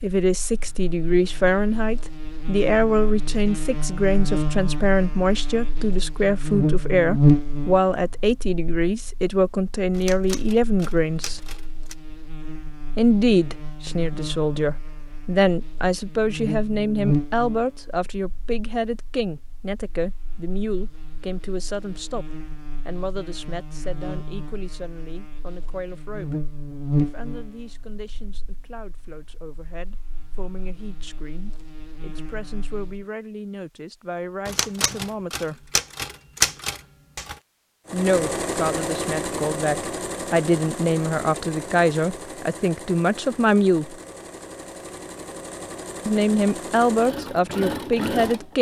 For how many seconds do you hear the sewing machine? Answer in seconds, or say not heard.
11 s.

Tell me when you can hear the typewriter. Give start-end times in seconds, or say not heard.
9.9-11.9, 34.5-37.4.